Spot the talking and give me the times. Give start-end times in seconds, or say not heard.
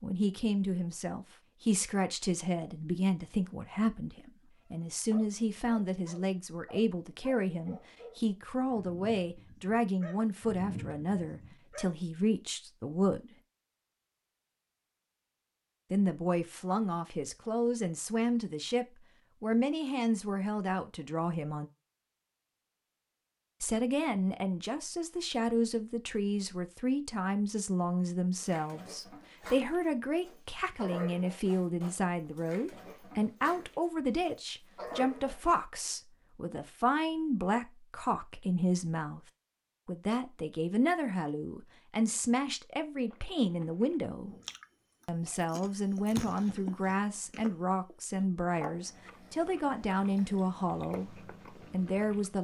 0.0-13.3, 15.9-21.7, 23.6-39.2, 39.9-44.4, 45.0-51.1, 51.7-52.4.